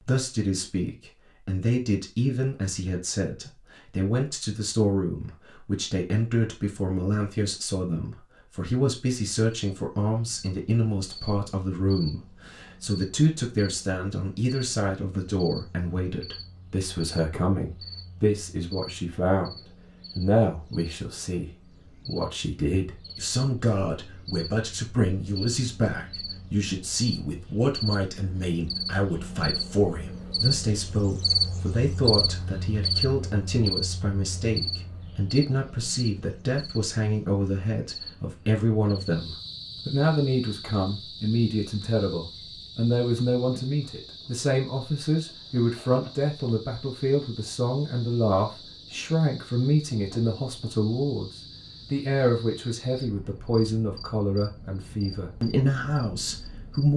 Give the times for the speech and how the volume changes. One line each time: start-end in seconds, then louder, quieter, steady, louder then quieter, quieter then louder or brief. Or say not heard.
0.0-56.9 steady.